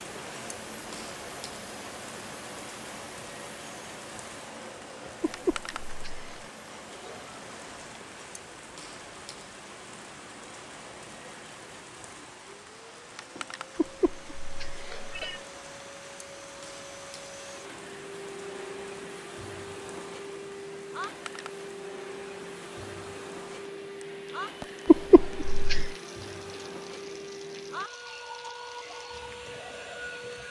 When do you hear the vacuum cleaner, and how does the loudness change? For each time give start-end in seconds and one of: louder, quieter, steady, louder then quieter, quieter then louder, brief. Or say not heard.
0.0-30.4 quieter then louder.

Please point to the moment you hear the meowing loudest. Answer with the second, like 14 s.
25 s.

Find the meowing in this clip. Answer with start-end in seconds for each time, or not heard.
5.2-6.3, 13.8-15.4, 24.9-25.9.